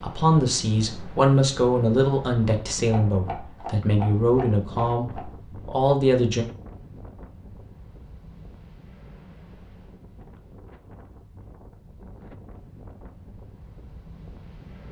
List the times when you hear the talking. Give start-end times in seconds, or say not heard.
0.0-6.5.